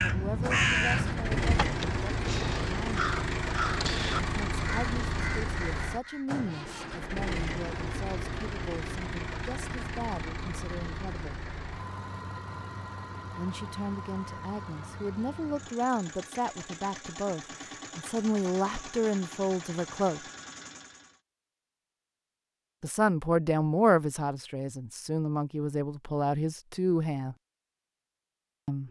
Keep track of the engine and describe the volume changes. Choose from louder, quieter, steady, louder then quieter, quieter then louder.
quieter.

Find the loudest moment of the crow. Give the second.
1 s.